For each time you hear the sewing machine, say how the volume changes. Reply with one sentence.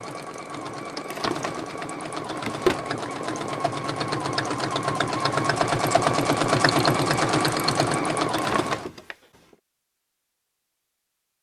The sewing machine can be heard from 0.0 to 8.8 s, getting louder.